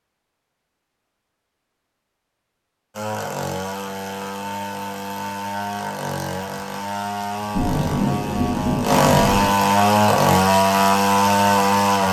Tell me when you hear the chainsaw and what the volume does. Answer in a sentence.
The chainsaw can be heard from 2.9 to 12.0 s, getting louder.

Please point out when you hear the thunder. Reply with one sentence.
You can hear the thunder from 7.5 to 9.5 s.